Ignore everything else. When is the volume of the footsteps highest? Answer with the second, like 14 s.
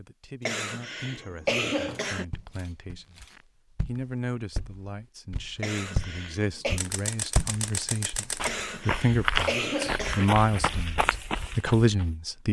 9 s.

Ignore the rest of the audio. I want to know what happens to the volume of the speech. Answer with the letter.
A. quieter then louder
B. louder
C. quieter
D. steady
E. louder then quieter
B.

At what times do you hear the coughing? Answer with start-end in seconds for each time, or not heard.
0.5-2.2, 5.6-6.8, 8.4-10.2.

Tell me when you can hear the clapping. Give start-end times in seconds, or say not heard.
not heard.